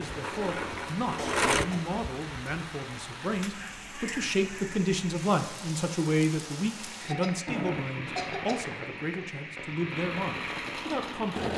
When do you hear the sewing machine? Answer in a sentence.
You can hear the sewing machine from 0.0 to 1.6 s and from 7.5 to 11.5 s.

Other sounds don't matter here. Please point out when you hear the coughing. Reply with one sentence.
You can hear the coughing from 1.1 to 2.0 s and from 7.0 to 8.7 s.